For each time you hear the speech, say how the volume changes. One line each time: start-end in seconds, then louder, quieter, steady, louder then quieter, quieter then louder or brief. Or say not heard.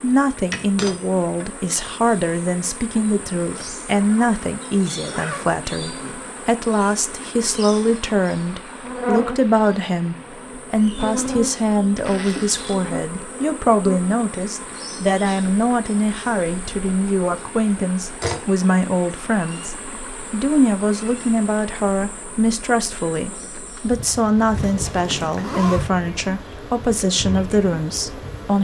0.0-28.6 steady.